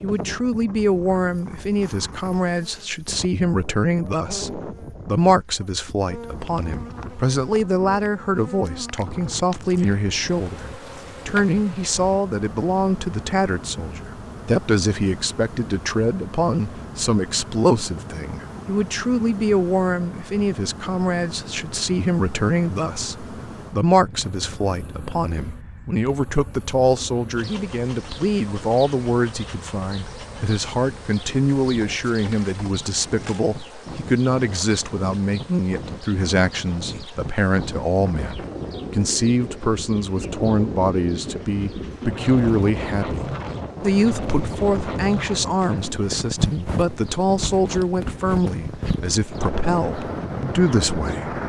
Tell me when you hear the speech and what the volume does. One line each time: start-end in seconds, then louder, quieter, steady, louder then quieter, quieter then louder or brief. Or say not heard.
0.0-51.4 steady.